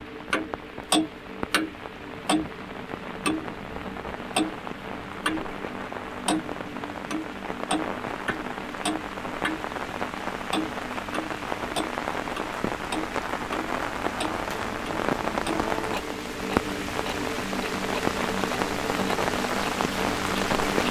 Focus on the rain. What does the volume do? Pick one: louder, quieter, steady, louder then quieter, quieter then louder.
louder.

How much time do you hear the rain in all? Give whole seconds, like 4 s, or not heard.
21 s.